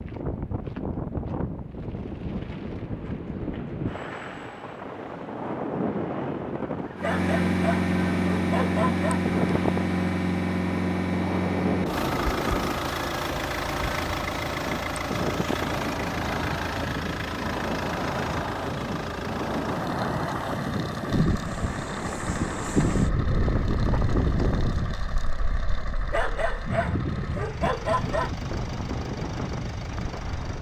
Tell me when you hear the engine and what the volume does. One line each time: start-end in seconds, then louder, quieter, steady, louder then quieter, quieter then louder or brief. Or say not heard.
7.0-30.5 quieter.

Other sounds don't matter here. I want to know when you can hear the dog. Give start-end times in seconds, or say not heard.
7.0-9.2, 26.1-28.3.